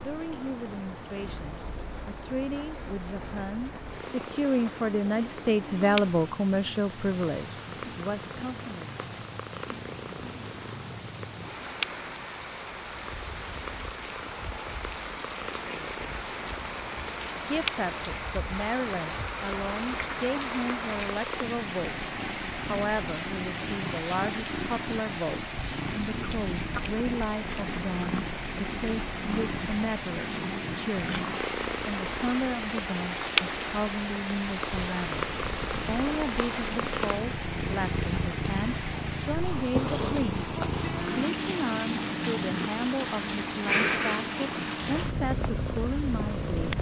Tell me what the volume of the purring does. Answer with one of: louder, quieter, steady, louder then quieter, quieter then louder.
louder.